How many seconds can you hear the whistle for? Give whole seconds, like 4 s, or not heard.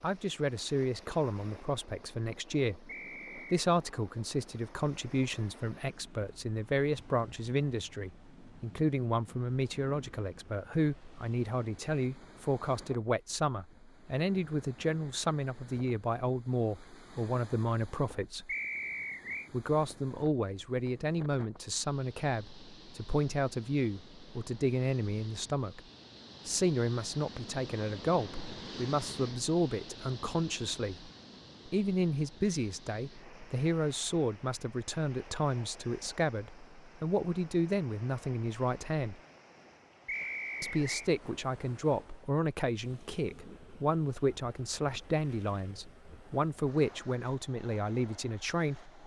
3 s.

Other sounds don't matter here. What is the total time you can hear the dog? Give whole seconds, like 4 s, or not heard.
not heard.